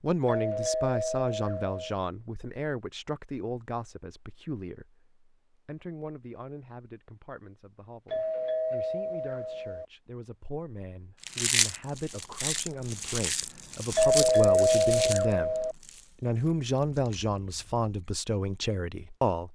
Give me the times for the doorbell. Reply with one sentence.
You can hear the doorbell from 0.2 to 1.9 s, from 8.1 to 9.8 s and from 13.9 to 15.8 s.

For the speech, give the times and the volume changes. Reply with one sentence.
You can hear the speech from 0.0 to 19.5 s, getting quieter then louder.